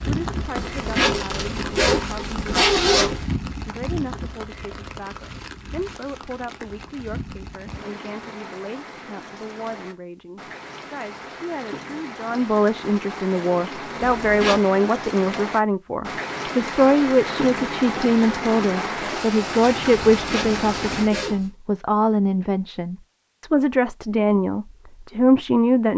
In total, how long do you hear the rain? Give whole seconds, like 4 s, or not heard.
21 s.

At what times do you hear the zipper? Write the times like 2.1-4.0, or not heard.
0.6-3.2, 14.0-14.6, 20.1-21.5.